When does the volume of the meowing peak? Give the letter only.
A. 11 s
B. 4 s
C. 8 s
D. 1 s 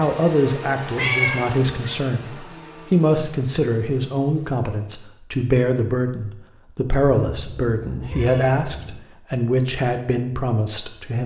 D.